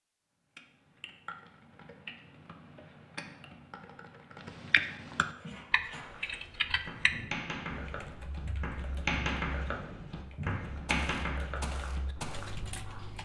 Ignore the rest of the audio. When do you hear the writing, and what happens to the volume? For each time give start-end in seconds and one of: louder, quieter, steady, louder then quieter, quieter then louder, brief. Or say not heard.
5.3-13.2 louder then quieter.